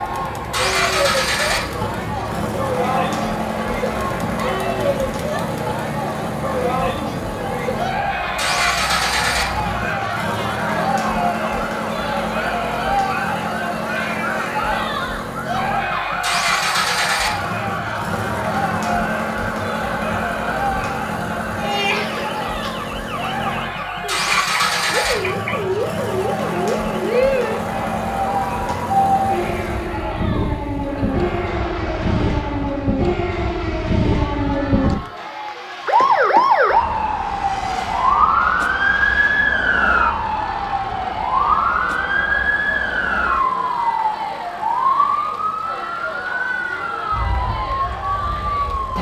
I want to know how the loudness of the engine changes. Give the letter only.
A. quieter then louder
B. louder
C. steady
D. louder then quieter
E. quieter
E.